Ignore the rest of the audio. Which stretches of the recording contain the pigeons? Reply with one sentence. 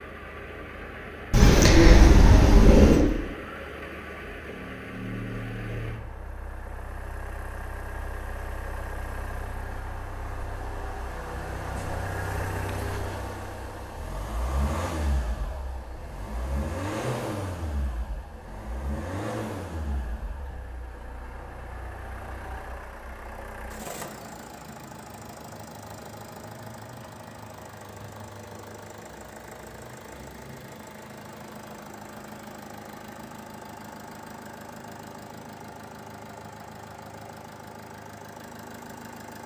You can hear the pigeons from 1.3 to 3.0 s.